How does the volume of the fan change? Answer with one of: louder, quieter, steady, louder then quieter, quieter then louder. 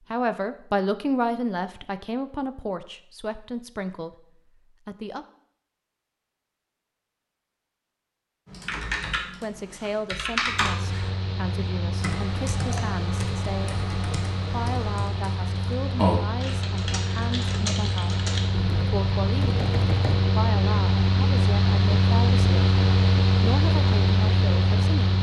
louder.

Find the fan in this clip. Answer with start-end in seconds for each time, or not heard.
10.4-25.1.